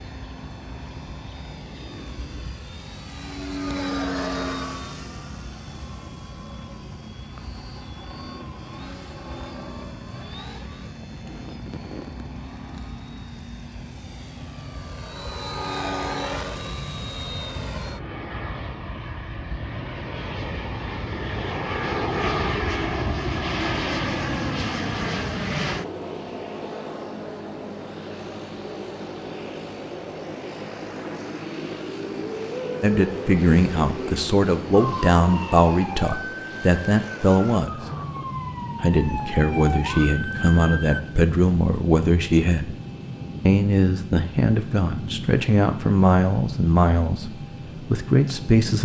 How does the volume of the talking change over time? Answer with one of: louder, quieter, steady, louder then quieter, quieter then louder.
steady.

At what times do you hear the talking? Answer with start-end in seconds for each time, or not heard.
32.8-37.9, 38.8-42.8, 43.5-48.8.